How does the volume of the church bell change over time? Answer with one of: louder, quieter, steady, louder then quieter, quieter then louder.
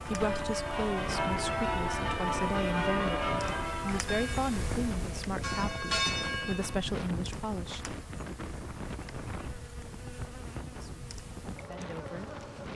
quieter then louder.